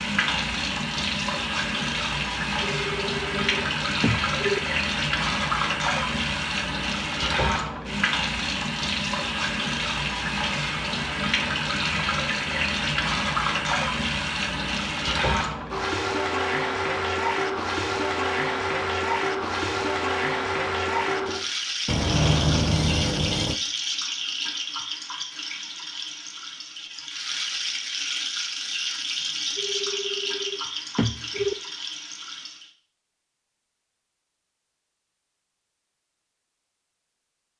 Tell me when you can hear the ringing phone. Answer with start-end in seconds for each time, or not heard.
2.6-4.6, 21.9-23.6, 29.6-31.6.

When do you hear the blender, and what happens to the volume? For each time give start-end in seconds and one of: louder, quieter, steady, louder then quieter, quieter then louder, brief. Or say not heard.
not heard.